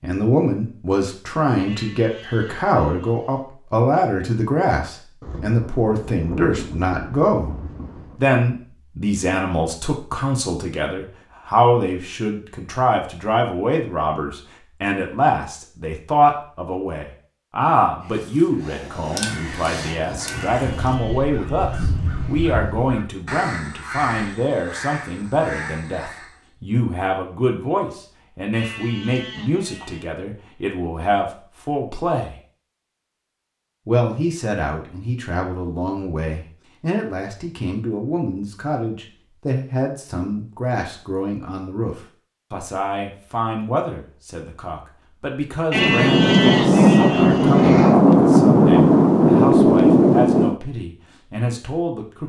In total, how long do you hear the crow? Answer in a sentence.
You can hear the crow for 8 seconds altogether.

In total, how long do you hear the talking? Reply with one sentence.
The talking can be heard for 50 seconds in total.